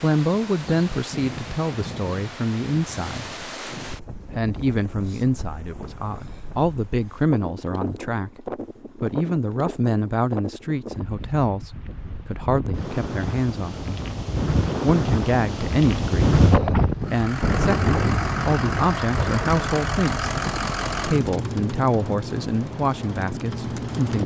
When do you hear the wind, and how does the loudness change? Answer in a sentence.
The wind can be heard from 0.0 to 24.2 s, getting louder then quieter.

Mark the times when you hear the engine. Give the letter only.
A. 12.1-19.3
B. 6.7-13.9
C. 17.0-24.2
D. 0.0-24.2
C.